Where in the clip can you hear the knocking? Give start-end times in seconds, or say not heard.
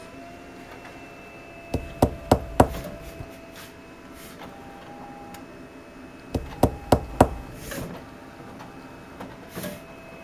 1.7-3.2, 6.3-7.8.